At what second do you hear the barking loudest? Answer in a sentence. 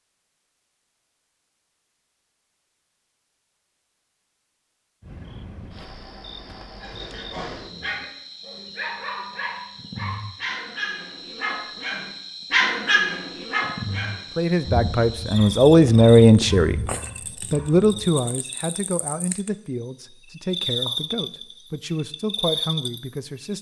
The loudest moment of the barking is at 13 seconds.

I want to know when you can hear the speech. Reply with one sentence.
The speech can be heard from 14.3 to 16.8 s and from 17.5 to 23.5 s.